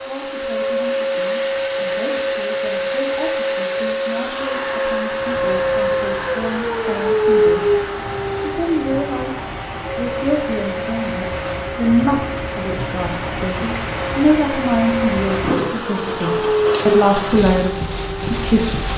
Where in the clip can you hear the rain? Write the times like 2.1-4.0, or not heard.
5.0-18.9.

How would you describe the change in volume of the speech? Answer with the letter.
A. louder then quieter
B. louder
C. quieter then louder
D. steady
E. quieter
B.